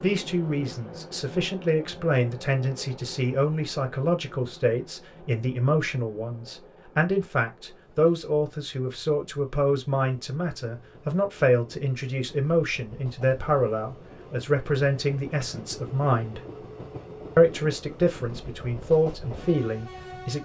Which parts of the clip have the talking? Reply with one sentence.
The talking can be heard from 0.0 to 16.4 s and from 17.4 to 20.4 s.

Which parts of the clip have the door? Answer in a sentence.
The door can't be heard in this clip.